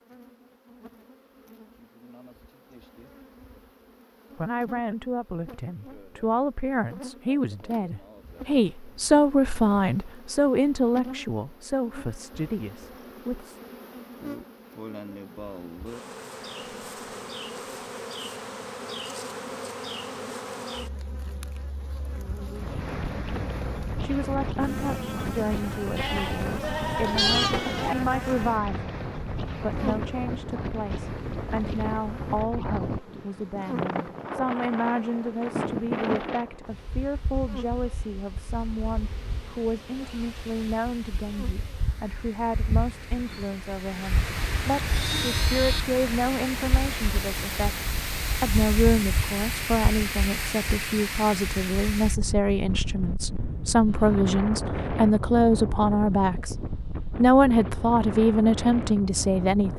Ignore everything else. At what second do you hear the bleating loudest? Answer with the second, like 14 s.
27 s.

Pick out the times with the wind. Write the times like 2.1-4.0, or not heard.
22.6-59.7.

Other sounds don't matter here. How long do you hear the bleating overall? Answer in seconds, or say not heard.
4 s.